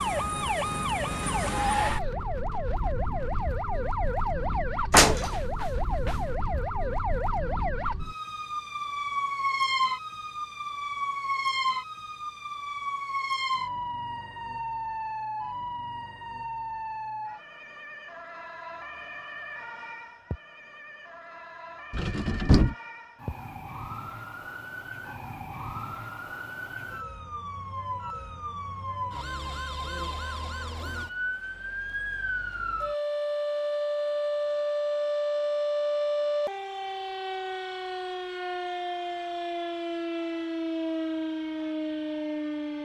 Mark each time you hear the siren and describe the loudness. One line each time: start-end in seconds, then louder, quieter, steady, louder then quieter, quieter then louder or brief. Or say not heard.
0.0-42.8 quieter then louder.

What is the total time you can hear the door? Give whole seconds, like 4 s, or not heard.
2 s.